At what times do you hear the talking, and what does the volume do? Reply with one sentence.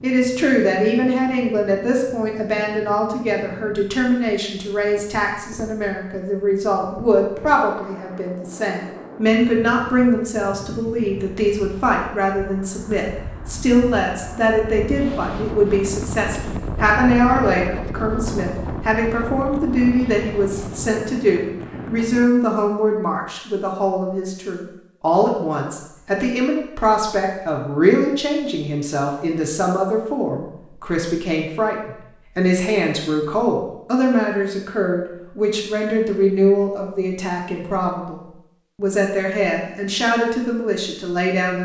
You can hear the talking from 0.0 to 41.6 s, at a steady volume.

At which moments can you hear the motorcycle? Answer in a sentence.
You can't hear the motorcycle here.